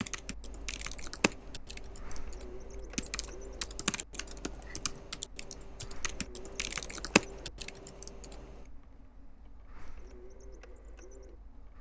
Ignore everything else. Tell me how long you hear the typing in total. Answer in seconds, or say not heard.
8 s.